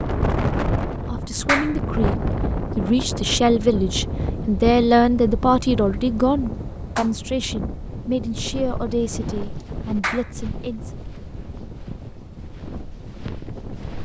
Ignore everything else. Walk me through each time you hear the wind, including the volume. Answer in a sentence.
The wind can be heard from 0.0 to 14.0 s, getting quieter.